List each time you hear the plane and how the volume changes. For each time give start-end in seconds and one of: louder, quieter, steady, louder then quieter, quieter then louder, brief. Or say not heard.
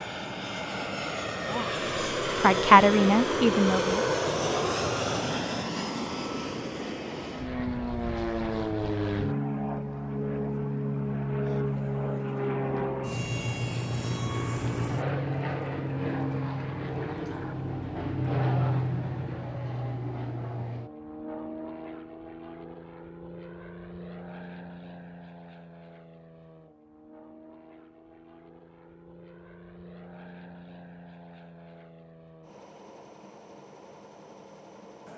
0.0-35.1 quieter.